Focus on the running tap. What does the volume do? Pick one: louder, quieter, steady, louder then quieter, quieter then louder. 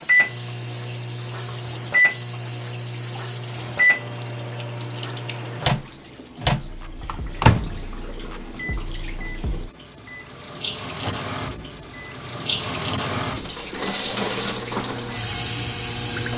louder.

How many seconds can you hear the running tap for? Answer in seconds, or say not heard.
16 s.